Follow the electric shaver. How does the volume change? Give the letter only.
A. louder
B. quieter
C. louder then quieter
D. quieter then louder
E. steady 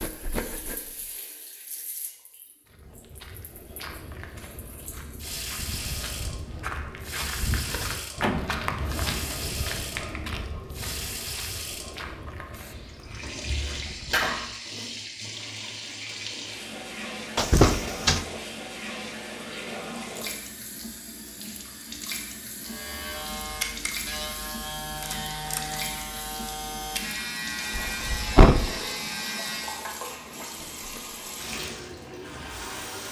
E.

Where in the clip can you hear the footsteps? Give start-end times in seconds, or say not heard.
2.6-14.3.